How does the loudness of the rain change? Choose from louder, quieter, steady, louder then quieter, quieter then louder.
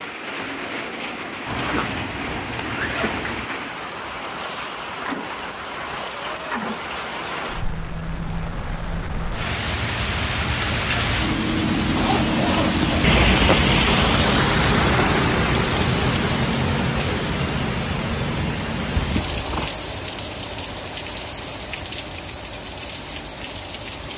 louder then quieter.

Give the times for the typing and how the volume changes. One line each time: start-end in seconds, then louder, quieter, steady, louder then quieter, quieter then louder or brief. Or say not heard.
not heard.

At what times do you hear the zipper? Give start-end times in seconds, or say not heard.
1.4-3.5, 11.9-13.6, 18.9-19.7.